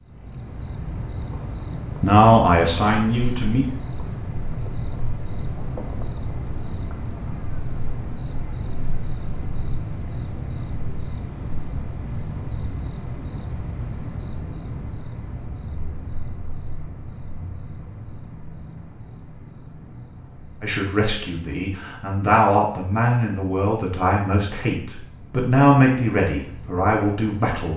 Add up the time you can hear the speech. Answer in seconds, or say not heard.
9 s.